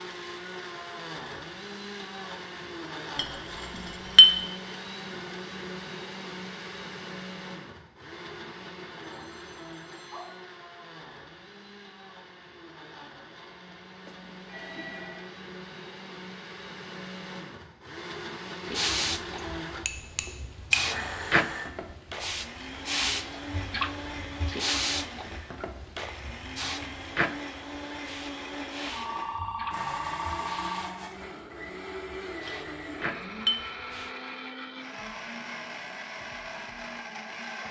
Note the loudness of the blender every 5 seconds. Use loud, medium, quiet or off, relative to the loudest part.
loud, loud, medium, loud, loud, loud, loud, loud.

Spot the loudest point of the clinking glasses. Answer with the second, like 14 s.
4 s.